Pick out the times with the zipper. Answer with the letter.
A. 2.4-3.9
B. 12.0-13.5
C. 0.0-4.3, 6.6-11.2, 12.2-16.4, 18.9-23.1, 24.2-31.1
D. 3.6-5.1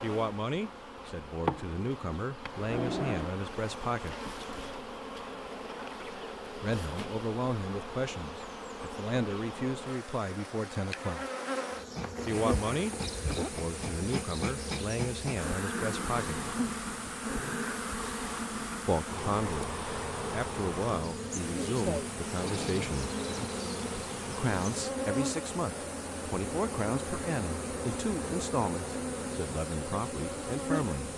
B.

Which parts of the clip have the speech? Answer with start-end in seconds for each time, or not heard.
0.0-4.3, 6.6-11.2, 12.2-16.4, 18.9-23.1, 24.2-31.1.